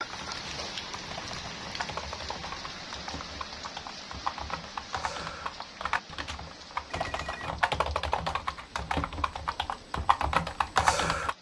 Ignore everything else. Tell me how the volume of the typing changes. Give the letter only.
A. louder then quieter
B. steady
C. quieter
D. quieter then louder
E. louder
E.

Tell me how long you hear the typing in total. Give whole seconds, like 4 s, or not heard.
11 s.